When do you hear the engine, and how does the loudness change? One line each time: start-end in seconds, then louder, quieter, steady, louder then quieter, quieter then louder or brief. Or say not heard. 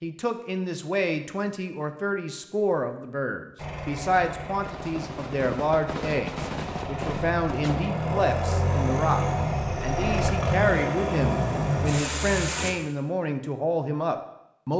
3.5-12.8 louder.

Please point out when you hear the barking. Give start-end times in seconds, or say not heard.
not heard.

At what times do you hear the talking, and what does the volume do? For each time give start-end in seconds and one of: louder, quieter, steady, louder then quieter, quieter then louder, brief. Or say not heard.
0.0-14.7 steady.